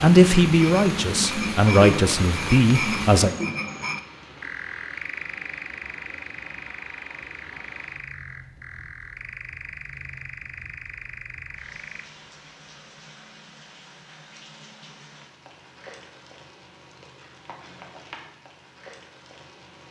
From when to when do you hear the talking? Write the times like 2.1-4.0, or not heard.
0.0-3.4.